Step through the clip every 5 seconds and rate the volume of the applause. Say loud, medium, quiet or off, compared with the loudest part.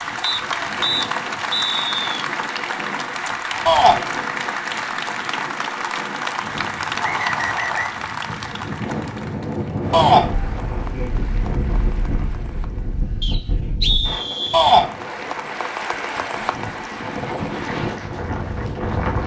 loud, loud, quiet, medium.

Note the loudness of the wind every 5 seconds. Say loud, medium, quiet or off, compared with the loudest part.
medium, loud, loud, loud.